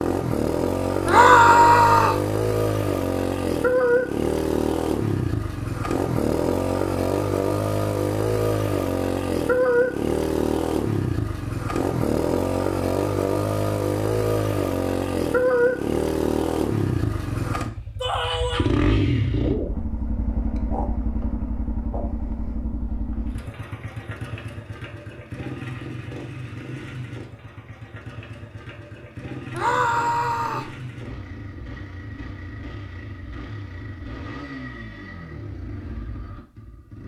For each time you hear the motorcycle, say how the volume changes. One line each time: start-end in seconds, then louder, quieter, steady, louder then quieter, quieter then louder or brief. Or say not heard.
0.0-37.0 quieter.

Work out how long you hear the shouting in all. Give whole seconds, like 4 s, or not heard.
3 s.